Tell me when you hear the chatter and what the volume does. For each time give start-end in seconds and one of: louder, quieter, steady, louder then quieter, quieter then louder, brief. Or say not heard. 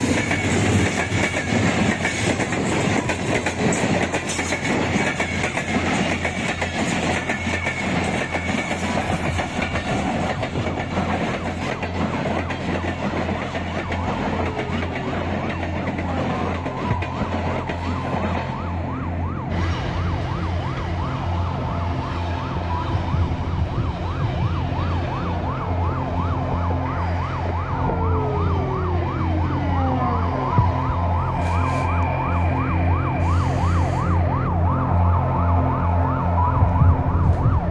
not heard.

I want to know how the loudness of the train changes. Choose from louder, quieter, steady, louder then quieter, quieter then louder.
quieter.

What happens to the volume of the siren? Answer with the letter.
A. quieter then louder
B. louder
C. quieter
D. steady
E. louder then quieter
B.